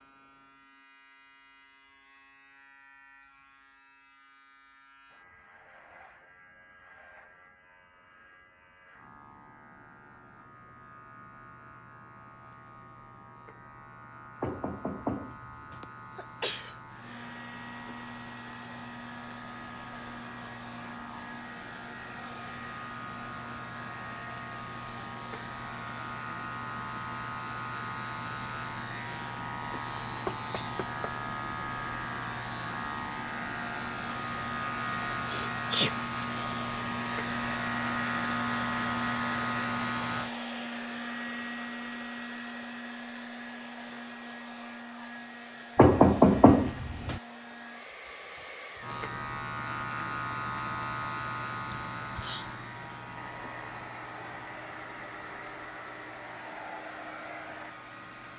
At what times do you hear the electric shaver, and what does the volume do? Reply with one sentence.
The electric shaver can be heard from 0.0 to 40.3 s, getting louder; and from 48.8 to 58.3 s, getting quieter.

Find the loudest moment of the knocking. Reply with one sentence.
The volume of the knocking peaks at 46 seconds.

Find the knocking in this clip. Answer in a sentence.
You can hear the knocking from 14.4 to 15.8 s, from 30.2 to 31.1 s and from 45.8 to 47.2 s.